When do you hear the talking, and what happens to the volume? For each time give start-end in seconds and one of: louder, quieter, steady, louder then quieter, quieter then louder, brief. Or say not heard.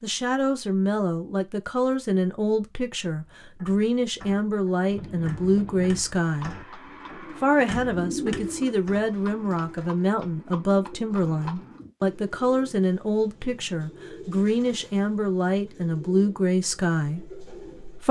0.0-6.5 steady
7.4-18.0 steady.